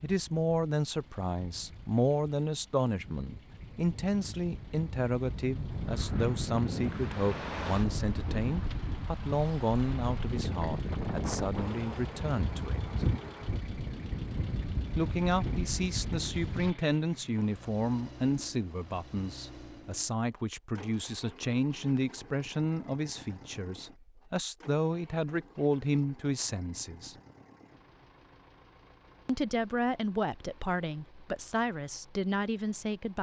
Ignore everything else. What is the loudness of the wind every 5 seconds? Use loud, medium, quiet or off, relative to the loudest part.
quiet, loud, loud, loud, off, off, off.